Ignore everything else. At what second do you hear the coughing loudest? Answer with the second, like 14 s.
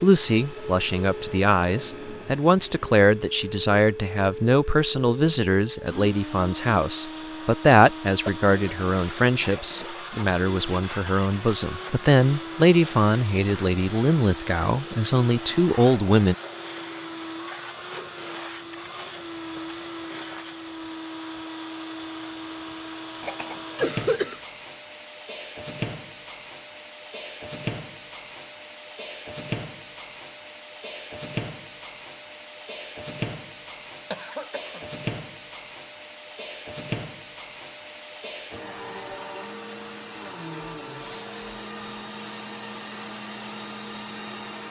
24 s.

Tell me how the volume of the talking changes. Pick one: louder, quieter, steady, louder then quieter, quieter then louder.
steady.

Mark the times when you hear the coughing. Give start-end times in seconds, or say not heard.
7.7-8.4, 23.2-24.4, 34.1-34.9.